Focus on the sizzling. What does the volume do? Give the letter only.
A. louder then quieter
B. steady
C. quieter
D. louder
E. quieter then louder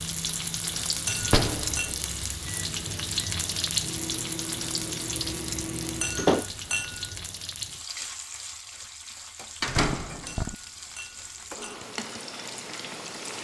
C.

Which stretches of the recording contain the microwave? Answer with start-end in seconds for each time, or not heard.
0.0-6.3.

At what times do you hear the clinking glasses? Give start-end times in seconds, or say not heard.
1.1-1.9, 6.0-7.3, 10.2-11.9.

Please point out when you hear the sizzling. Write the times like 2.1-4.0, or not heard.
0.0-13.4.